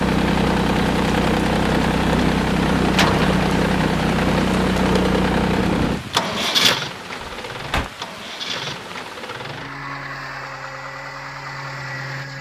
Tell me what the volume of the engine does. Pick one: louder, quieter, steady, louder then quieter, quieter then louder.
quieter.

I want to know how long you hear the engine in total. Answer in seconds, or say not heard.
12 s.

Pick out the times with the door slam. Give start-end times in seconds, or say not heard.
2.9-3.4, 7.2-7.9.